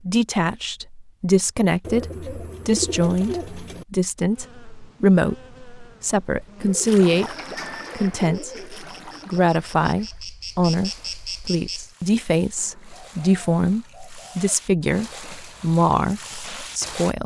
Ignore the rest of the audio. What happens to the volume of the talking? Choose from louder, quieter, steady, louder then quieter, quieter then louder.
steady.